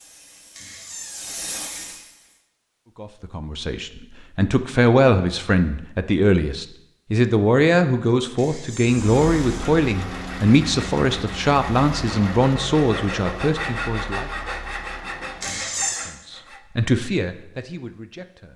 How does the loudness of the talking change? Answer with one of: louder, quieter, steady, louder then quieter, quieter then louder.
quieter.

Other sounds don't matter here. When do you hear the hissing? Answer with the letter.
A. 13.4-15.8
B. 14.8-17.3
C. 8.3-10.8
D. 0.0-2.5
D.